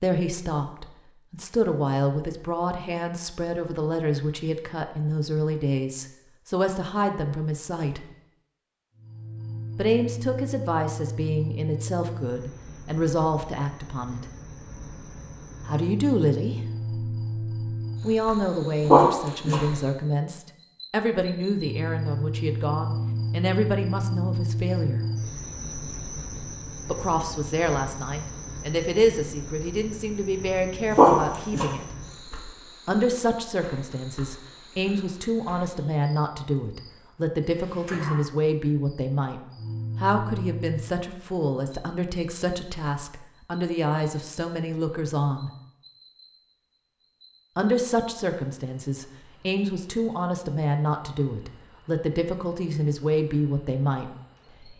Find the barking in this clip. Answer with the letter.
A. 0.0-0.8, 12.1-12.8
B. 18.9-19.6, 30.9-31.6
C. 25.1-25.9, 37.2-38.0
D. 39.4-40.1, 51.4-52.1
B.